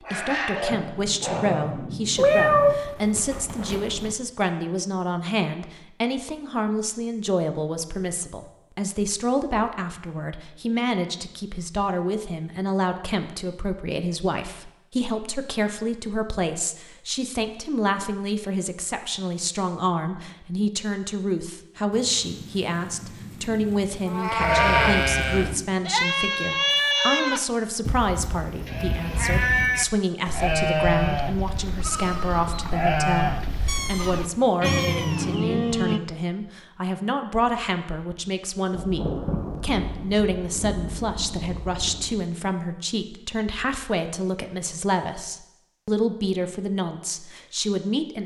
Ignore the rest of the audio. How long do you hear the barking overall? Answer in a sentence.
You can hear the barking for 2 seconds altogether.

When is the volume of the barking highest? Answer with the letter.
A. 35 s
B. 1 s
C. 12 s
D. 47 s
B.